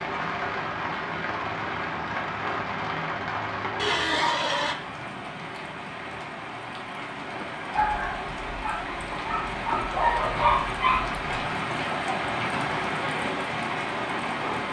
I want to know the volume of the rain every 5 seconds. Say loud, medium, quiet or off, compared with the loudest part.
loud, medium, loud.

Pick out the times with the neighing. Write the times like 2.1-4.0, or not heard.
3.8-4.8.